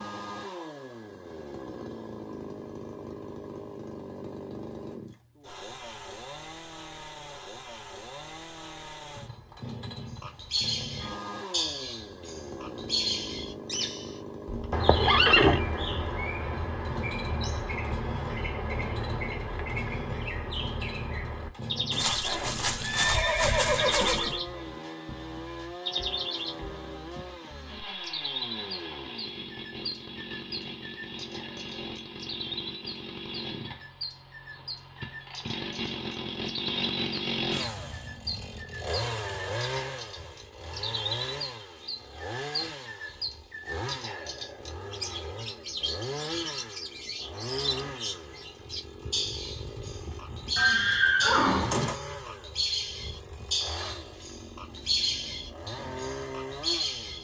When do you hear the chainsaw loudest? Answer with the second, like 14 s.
37 s.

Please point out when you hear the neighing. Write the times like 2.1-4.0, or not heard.
14.7-15.6, 21.9-24.4, 50.5-52.0.